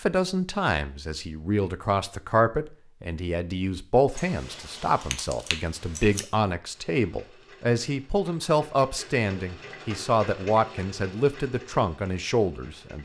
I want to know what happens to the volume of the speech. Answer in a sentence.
The loudness of the speech stays about the same.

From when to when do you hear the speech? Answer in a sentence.
The speech can be heard from 0.0 to 13.0 s.